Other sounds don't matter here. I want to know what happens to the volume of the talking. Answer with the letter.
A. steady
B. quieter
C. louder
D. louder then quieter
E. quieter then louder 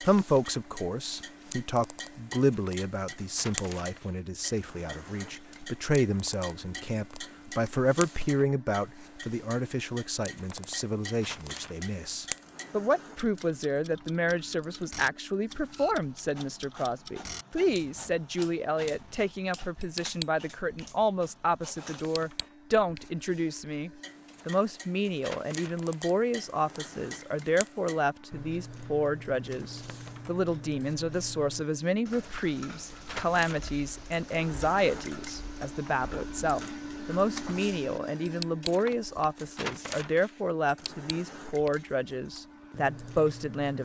A.